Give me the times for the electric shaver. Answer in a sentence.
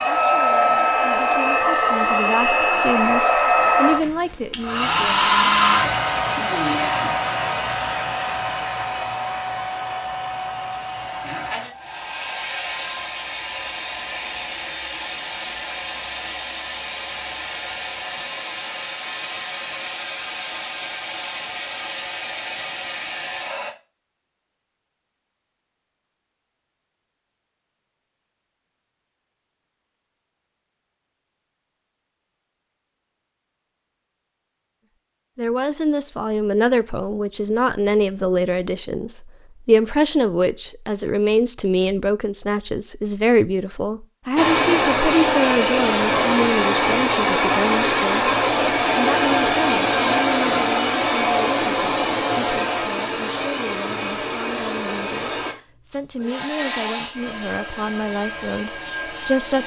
You can't hear the electric shaver here.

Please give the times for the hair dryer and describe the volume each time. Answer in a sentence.
The hair dryer can be heard from 0.0 to 23.8 s, getting quieter; and from 44.4 to 59.6 s, getting quieter.